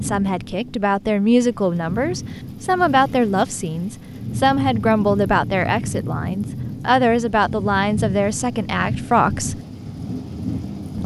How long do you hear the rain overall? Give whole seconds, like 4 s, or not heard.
11 s.